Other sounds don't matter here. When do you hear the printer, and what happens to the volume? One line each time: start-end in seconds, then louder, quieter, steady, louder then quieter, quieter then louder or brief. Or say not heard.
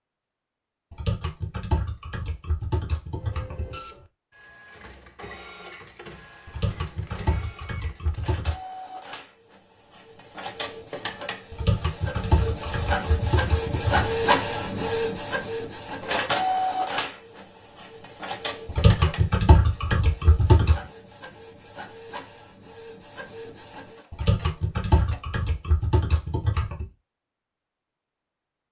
3.1-25.3 louder then quieter.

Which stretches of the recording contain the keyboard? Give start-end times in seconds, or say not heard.
0.9-3.8, 6.5-8.6, 11.5-14.2, 18.6-20.8, 24.1-26.9.